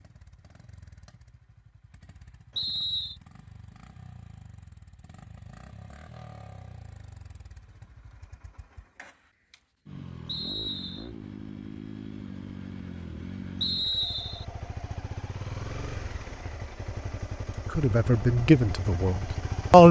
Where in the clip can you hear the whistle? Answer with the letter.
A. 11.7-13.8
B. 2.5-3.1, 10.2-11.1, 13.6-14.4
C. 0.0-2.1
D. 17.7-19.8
B.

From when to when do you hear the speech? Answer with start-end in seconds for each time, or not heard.
17.7-19.8.